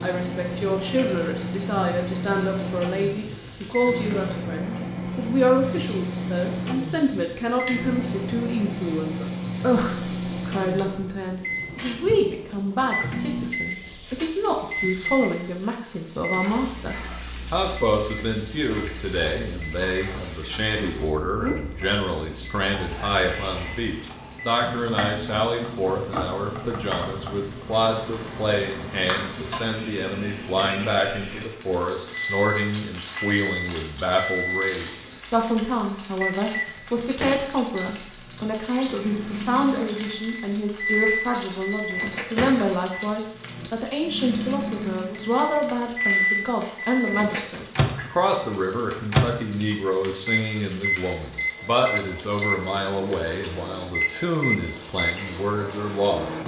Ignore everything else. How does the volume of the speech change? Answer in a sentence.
The volume of the speech stays about the same.